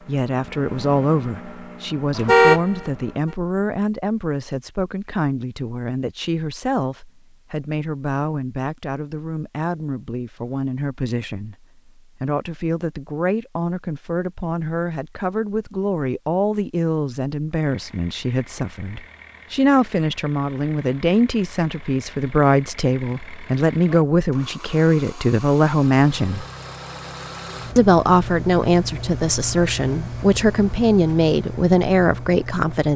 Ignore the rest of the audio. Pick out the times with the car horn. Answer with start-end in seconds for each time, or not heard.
2.1-2.9.